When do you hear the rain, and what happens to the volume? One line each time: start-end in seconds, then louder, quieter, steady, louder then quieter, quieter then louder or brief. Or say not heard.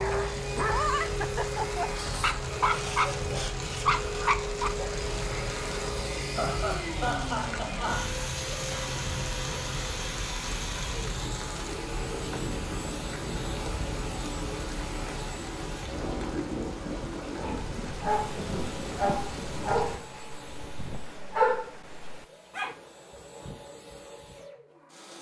0.0-20.0 steady.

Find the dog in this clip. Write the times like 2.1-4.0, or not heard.
0.0-5.0, 17.4-22.8.